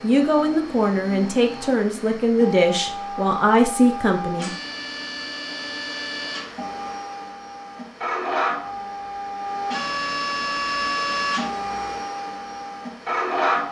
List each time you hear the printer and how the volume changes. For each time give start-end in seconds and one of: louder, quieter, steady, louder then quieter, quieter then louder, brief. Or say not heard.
0.0-13.6 louder.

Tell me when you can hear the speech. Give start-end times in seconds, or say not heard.
0.0-4.5.